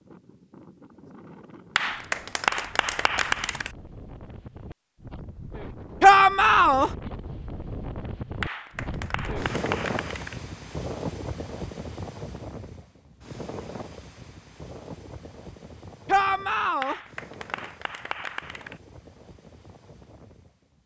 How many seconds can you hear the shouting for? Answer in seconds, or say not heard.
2 s.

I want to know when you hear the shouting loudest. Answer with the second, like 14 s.
6 s.